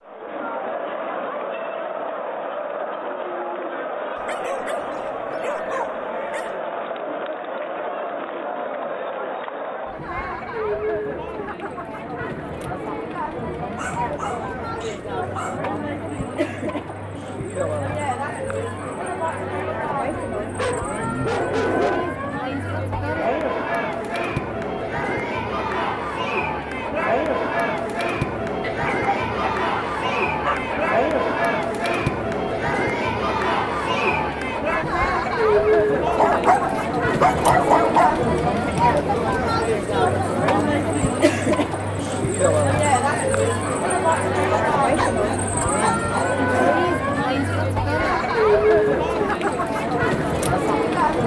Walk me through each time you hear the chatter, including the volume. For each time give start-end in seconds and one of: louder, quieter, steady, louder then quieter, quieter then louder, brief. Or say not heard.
0.0-51.2 louder.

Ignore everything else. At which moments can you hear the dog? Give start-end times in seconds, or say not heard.
4.2-6.5, 13.8-15.6, 20.6-22.1, 28.6-30.9, 36.0-38.2, 44.4-46.3.